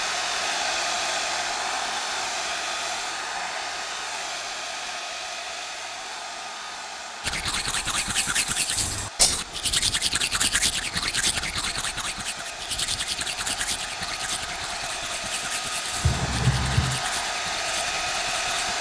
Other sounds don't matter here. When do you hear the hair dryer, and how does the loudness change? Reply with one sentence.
You can hear the hair dryer from 0.0 to 18.7 s, getting quieter then louder.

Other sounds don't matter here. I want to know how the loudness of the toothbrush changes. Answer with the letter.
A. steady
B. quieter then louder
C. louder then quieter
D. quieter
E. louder
D.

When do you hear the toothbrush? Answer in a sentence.
You can hear the toothbrush from 7.2 to 18.7 s.